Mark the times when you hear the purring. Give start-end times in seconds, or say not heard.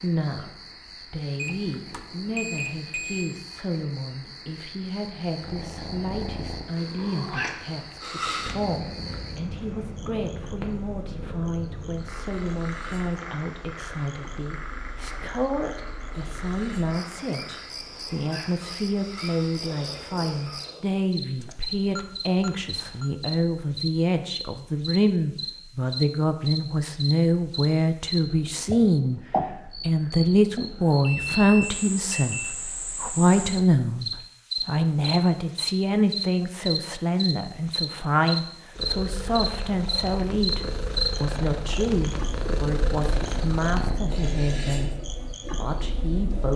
5.4-20.9, 38.8-44.0.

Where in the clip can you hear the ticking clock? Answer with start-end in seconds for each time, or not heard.
not heard.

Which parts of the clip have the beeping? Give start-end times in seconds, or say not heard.
1.4-3.4, 21.4-23.1, 31.0-32.5.